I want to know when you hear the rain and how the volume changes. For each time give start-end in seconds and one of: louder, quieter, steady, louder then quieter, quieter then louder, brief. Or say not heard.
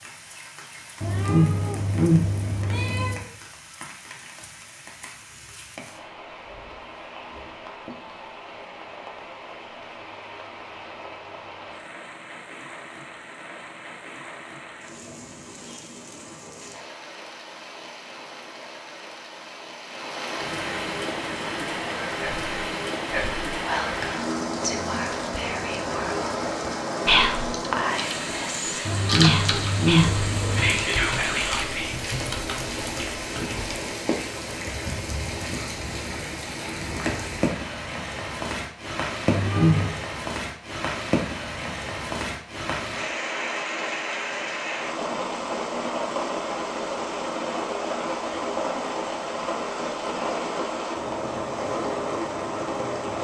0.0-53.1 louder.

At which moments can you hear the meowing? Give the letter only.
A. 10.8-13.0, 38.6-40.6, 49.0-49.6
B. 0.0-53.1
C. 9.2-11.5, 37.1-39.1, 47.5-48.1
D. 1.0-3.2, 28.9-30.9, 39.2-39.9
D.